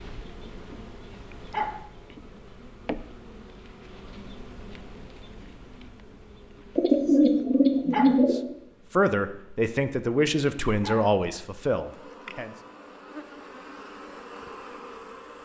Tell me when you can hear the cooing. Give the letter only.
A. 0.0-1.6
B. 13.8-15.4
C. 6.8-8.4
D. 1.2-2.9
C.